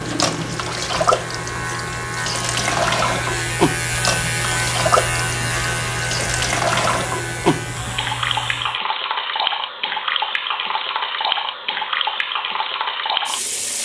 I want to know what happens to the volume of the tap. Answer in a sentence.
The loudness of the tap stays about the same.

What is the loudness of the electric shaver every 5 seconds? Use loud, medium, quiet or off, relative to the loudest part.
loud, loud, off.